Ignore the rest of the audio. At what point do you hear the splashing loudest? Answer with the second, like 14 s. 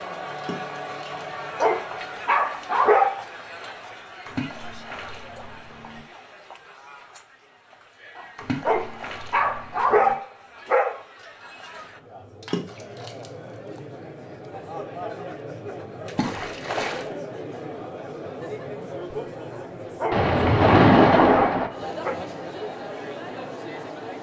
21 s.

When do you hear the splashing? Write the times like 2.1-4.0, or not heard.
0.3-1.2, 4.2-6.0, 8.3-10.2, 12.4-13.3, 16.1-17.1, 20.1-21.7.